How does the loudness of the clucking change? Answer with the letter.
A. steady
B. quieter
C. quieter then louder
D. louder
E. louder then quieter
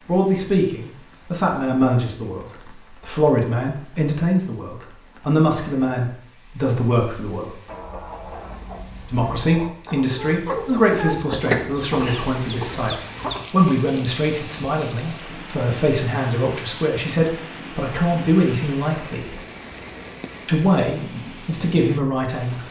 E.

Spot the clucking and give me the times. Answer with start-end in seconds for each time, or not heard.
7.7-13.4.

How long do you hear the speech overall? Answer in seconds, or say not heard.
20 s.